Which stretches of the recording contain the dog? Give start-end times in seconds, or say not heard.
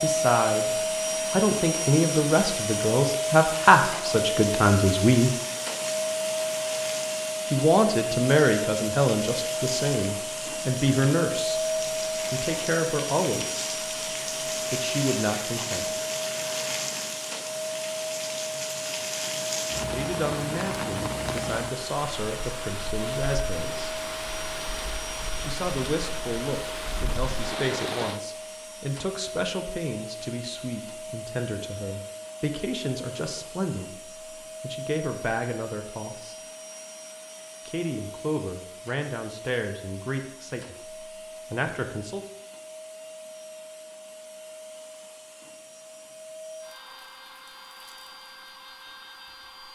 not heard.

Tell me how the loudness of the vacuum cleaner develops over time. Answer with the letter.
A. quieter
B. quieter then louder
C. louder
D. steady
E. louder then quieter
A.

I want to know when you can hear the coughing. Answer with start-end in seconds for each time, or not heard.
not heard.